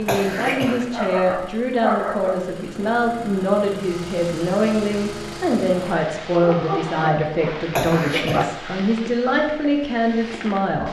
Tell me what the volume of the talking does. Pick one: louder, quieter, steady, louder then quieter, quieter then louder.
steady.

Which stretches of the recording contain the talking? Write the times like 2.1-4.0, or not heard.
0.0-10.8.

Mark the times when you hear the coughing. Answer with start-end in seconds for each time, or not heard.
0.1-0.8, 7.8-8.4.